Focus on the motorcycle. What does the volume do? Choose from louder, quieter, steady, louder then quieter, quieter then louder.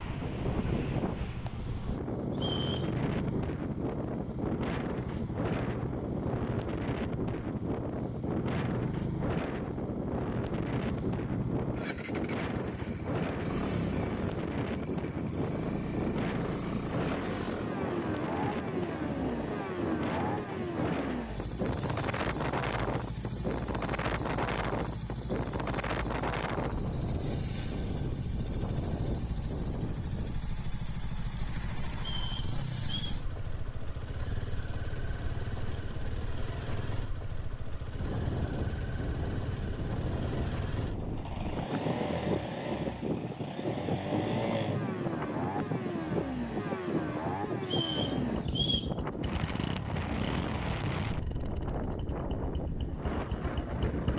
steady.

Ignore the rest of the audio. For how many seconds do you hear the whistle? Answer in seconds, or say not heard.
3 s.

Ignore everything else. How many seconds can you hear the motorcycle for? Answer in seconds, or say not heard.
54 s.